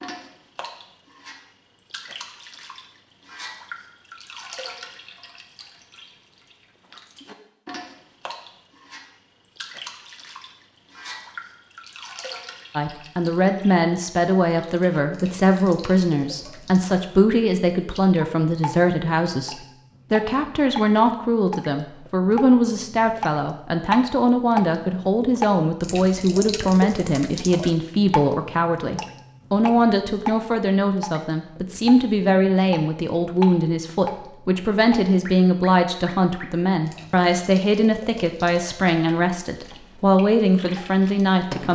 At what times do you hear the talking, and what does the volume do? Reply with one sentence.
The talking can be heard from 12.8 to 41.6 s, at a steady volume.